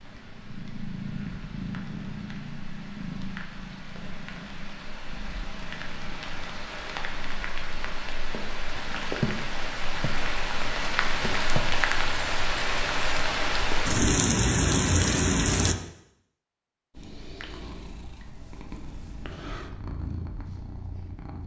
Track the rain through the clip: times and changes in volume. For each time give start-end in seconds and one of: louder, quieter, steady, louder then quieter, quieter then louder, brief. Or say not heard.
0.0-15.8 louder.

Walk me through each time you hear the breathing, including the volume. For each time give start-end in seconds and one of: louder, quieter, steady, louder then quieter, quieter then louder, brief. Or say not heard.
not heard.